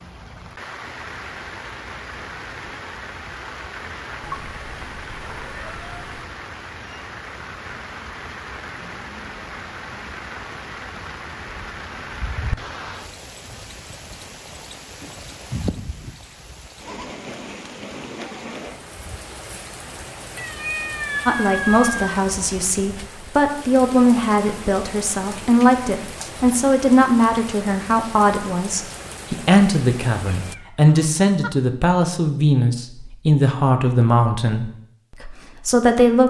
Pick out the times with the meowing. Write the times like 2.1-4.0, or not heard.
4.2-6.2, 20.4-22.1, 30.4-31.5.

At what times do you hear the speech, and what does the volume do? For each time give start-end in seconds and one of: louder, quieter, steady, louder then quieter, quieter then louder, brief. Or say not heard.
21.2-36.2 steady.